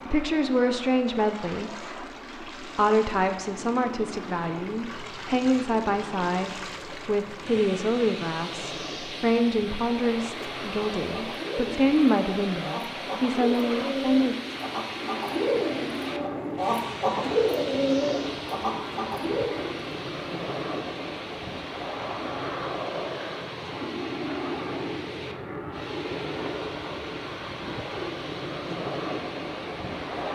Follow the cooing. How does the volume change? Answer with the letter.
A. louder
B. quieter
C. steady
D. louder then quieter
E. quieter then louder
A.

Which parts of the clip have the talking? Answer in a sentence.
The talking can be heard from 0.1 to 1.7 s and from 2.6 to 14.3 s.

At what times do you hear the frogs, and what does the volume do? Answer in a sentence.
The frogs can't be heard in this clip.